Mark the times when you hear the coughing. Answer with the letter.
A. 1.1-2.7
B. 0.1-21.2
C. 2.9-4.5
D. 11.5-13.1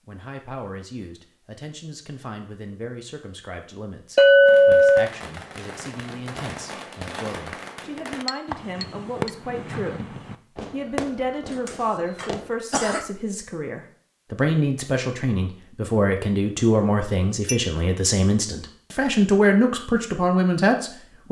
D.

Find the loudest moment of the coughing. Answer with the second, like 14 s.
13 s.